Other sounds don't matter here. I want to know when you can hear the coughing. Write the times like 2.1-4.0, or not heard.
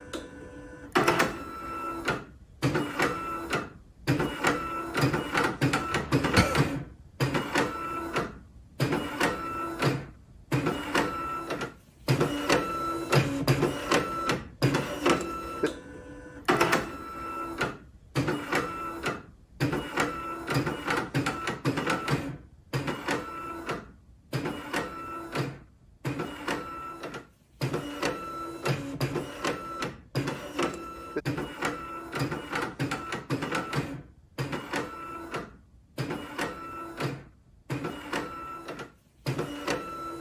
5.9-6.7.